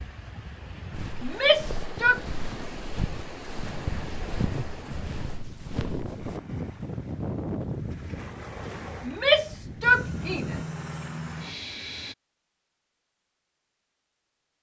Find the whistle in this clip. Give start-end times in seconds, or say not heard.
not heard.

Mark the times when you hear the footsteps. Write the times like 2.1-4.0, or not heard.
0.9-6.4.